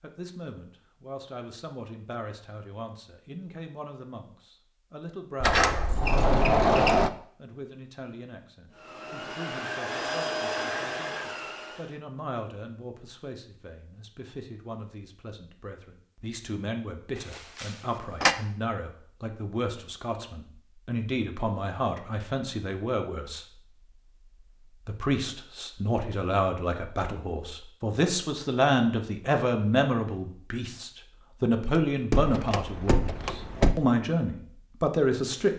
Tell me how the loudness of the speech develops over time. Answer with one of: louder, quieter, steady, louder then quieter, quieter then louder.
louder.